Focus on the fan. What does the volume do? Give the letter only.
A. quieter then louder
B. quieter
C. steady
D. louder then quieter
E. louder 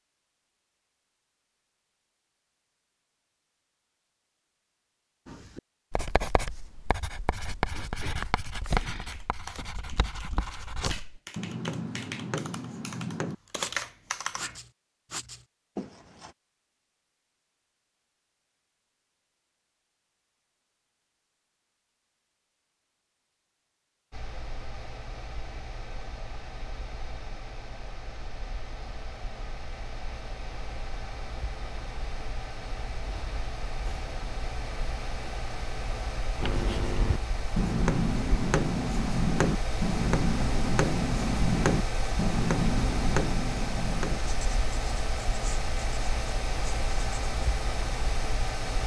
E.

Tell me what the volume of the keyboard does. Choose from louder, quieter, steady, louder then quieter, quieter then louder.
louder.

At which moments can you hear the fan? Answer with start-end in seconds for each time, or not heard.
24.1-48.8.